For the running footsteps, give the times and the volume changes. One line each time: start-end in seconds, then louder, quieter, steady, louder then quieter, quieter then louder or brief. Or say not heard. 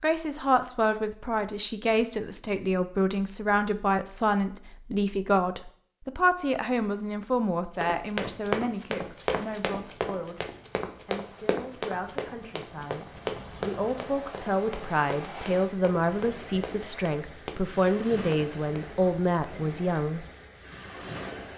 7.8-18.9 quieter.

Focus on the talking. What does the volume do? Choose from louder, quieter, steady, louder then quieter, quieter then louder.
quieter then louder.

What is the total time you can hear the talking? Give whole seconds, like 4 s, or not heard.
20 s.